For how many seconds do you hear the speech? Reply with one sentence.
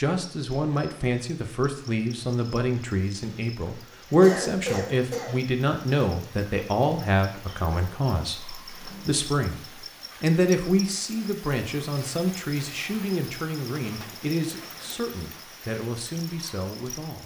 You can hear the speech for 17 seconds altogether.